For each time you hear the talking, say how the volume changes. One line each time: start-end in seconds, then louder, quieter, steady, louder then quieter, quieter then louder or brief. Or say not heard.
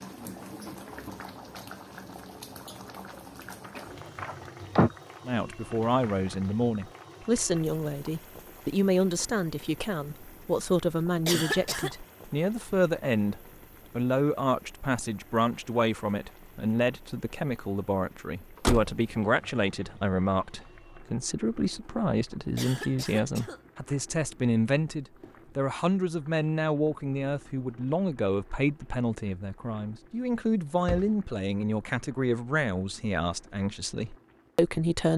5.2-35.1 steady.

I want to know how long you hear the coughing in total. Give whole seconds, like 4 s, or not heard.
2 s.